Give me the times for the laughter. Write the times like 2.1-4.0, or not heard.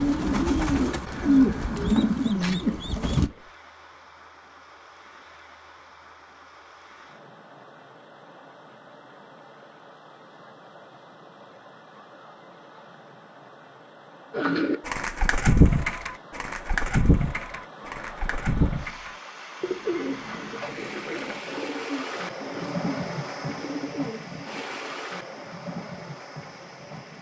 not heard.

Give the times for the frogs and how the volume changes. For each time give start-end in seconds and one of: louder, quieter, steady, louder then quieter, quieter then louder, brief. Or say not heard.
not heard.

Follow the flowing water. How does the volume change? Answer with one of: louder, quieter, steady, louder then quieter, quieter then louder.
louder.